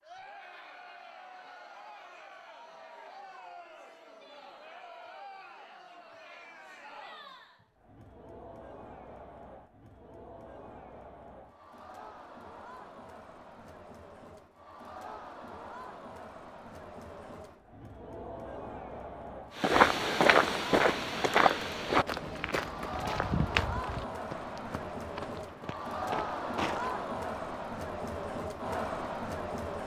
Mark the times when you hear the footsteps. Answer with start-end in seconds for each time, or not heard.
19.6-27.1.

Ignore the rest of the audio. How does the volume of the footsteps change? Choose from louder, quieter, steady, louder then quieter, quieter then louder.
quieter.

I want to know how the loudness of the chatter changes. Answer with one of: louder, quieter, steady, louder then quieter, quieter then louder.
louder.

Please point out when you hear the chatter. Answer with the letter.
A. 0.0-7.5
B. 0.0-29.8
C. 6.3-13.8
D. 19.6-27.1
B.